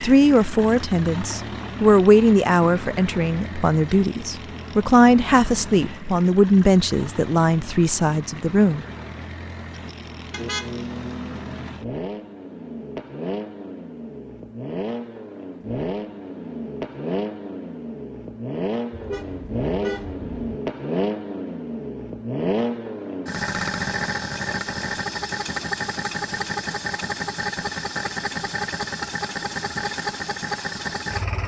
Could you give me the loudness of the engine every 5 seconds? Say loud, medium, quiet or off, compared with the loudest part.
medium, medium, medium, loud, loud, loud, loud.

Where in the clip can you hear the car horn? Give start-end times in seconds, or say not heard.
10.3-11.8, 18.9-20.5.